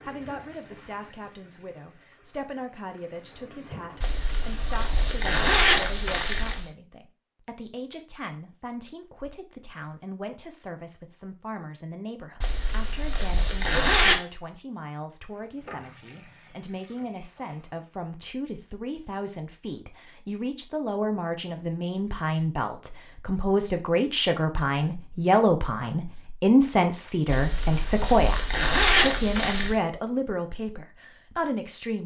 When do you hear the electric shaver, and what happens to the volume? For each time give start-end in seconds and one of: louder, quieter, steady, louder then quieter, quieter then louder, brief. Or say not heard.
not heard.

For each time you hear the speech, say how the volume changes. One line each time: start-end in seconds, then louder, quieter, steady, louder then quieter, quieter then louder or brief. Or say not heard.
0.0-32.0 louder.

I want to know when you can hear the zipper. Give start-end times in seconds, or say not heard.
4.0-6.7, 12.4-14.2, 27.2-29.8.